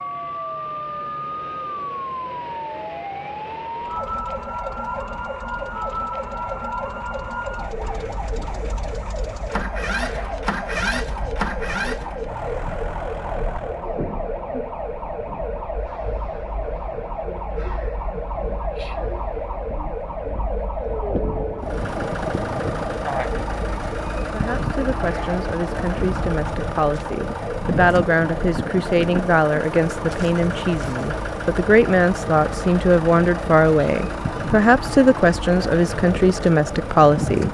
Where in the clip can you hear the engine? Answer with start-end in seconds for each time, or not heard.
3.8-13.9, 21.6-37.5.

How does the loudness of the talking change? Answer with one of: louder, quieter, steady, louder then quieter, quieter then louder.
louder.